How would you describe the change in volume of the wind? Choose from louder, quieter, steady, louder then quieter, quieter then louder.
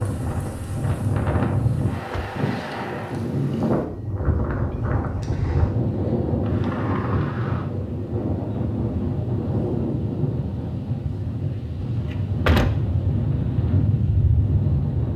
steady.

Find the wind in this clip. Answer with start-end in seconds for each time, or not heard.
0.0-15.1.